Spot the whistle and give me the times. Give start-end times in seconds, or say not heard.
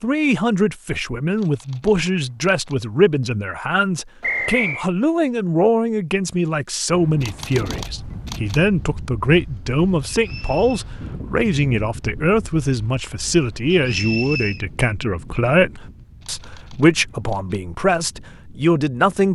4.2-4.8, 10.1-10.8, 13.7-14.6.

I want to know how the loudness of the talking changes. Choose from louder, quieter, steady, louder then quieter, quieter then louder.
steady.